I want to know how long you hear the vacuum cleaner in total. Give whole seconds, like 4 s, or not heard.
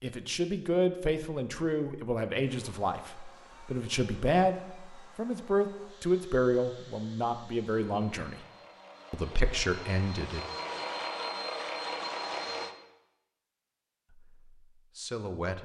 10 s.